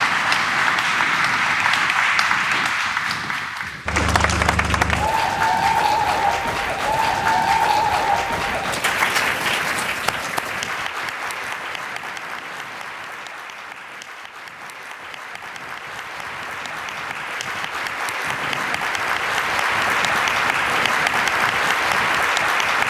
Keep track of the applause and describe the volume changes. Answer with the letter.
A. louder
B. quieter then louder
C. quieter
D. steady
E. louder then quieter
B.